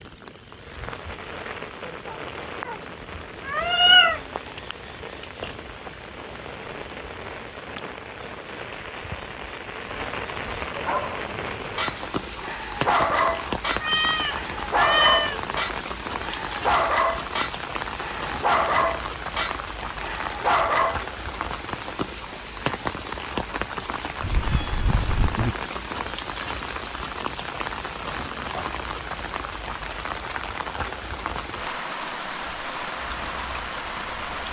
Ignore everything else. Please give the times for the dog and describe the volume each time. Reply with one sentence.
The dog can be heard from 10.8 to 21.0 s, at a steady volume.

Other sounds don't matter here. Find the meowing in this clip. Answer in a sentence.
The meowing can be heard from 2.6 to 4.2 s, from 13.8 to 15.4 s and from 24.2 to 25.6 s.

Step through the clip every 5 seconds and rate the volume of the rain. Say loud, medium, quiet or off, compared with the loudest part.
medium, medium, loud, loud, loud, loud, loud.